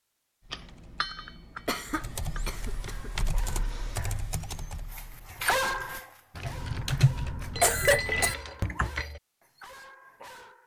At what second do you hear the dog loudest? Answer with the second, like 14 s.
6 s.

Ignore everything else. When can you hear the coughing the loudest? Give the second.
8 s.